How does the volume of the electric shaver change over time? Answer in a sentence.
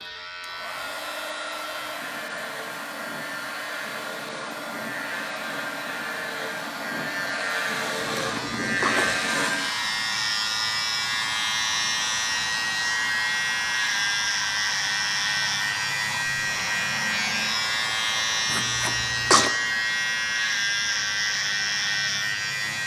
The volume of the electric shaver goes up.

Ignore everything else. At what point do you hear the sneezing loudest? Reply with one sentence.
The loudest moment of the sneezing is at 19 seconds.